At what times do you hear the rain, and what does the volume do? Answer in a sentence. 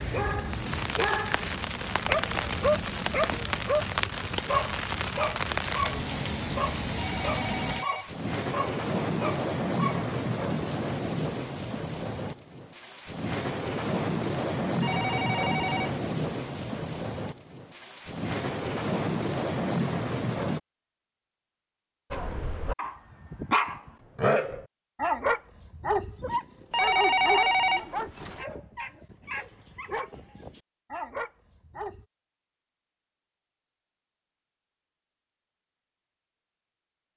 The rain can be heard from 0.0 to 20.6 s, at a steady volume.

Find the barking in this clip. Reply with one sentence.
The barking can be heard from 0.1 to 10.1 s and from 22.1 to 32.0 s.